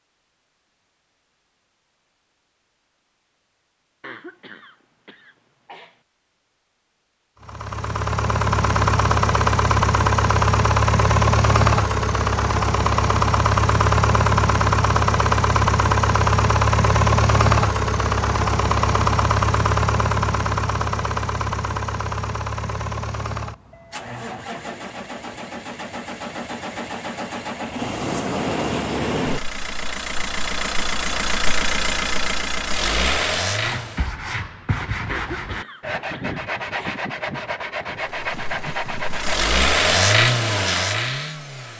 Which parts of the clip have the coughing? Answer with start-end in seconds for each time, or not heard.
4.0-6.0, 35.0-37.0.